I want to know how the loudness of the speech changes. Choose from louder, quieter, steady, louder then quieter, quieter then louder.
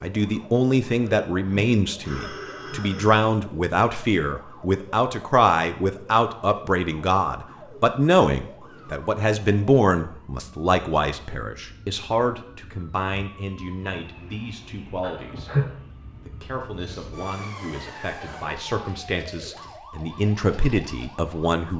quieter then louder.